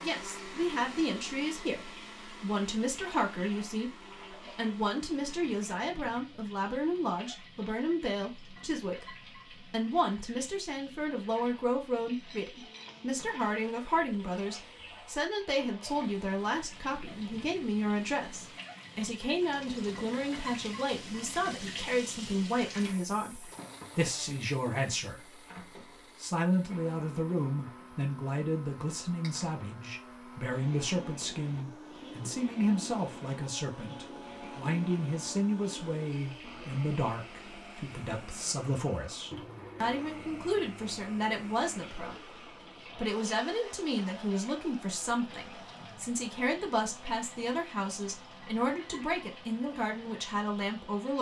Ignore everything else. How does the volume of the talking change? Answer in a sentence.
The volume of the talking stays about the same.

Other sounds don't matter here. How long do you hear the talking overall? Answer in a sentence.
The talking can be heard for 50 seconds in total.